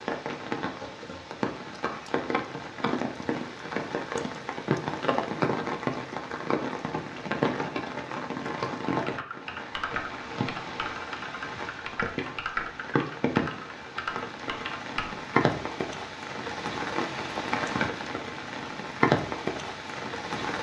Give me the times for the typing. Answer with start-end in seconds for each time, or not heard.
8.8-15.2.